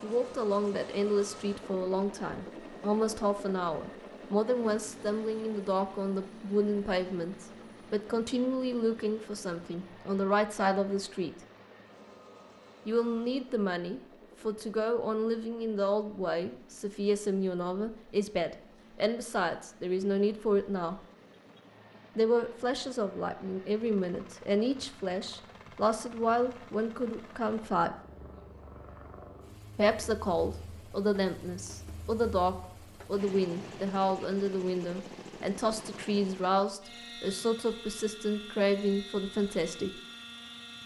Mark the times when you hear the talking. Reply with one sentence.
You can hear the talking from 0.0 to 11.3 s, from 12.8 to 21.0 s, from 22.1 to 27.9 s and from 29.8 to 40.0 s.